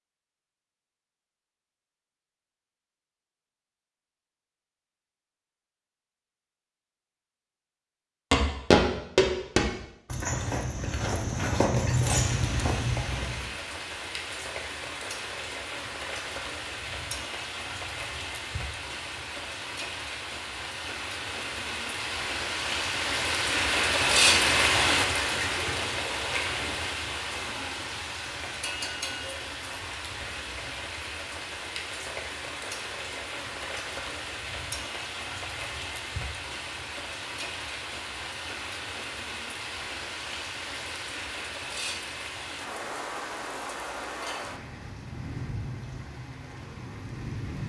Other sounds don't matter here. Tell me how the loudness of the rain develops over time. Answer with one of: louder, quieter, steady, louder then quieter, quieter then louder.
louder then quieter.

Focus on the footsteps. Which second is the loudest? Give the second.
9 s.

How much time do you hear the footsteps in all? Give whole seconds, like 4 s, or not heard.
5 s.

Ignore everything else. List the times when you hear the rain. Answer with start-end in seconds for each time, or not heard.
12.1-47.6.